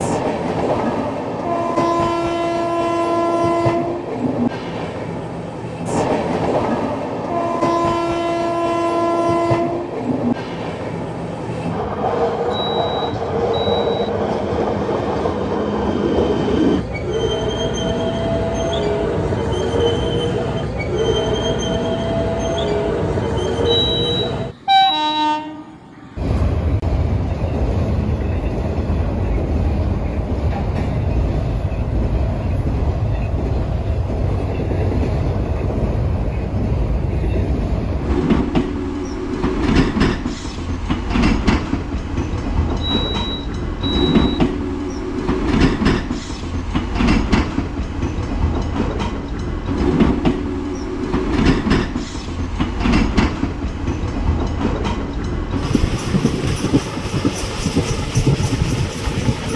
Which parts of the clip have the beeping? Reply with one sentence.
You can hear the beeping from 12.5 to 14.1 s, from 23.6 to 25.2 s and from 42.8 to 44.4 s.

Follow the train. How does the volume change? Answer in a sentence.
The volume of the train stays about the same.